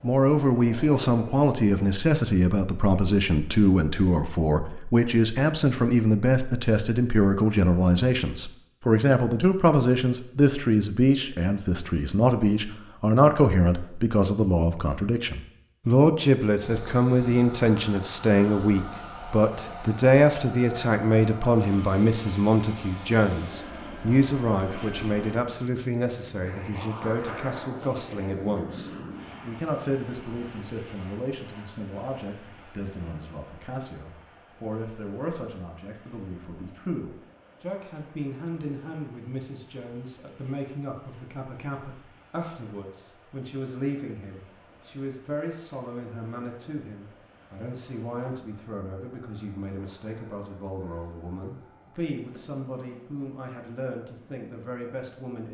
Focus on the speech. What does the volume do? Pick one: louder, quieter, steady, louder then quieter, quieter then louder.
quieter.